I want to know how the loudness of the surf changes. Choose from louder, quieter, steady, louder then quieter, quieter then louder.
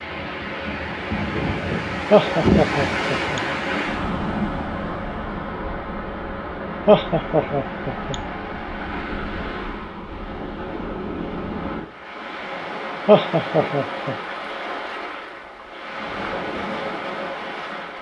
quieter.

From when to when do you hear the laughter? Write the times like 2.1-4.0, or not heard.
2.1-3.4, 6.8-8.2, 13.1-14.2.